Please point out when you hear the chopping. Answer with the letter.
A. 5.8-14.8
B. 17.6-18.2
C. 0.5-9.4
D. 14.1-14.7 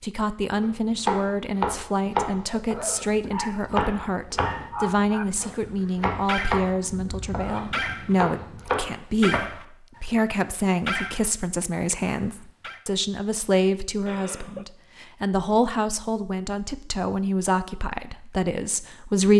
C.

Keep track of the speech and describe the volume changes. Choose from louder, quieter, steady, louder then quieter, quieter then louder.
steady.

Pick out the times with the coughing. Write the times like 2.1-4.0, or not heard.
14.1-14.7.